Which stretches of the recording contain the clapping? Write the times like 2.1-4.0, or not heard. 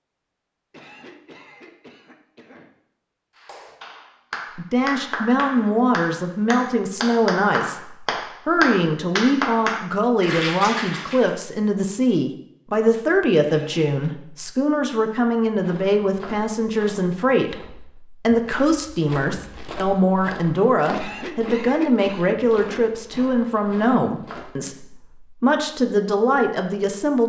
3.4-11.3.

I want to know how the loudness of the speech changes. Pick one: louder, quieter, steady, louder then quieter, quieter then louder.
steady.